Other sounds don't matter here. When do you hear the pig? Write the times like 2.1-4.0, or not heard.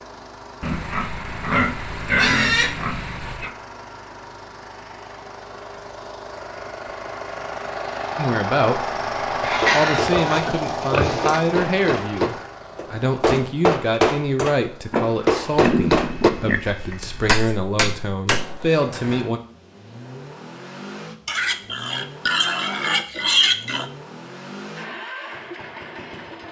0.6-3.5, 9.4-11.4, 14.9-16.6, 21.2-23.9.